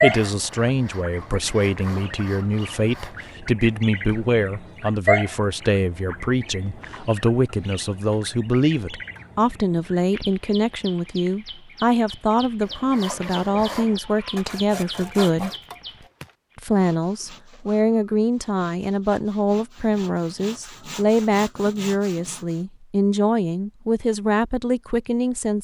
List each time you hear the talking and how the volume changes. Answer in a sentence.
You can hear the talking from 0.0 to 15.5 s, at a steady volume; and from 16.6 to 25.5 s, at a steady volume.